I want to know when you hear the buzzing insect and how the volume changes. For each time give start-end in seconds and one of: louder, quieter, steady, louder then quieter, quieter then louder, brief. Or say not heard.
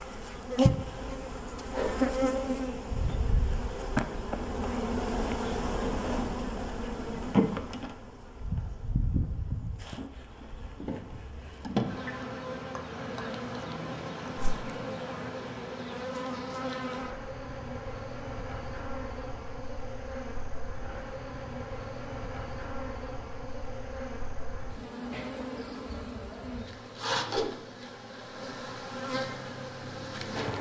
0.0-30.5 quieter.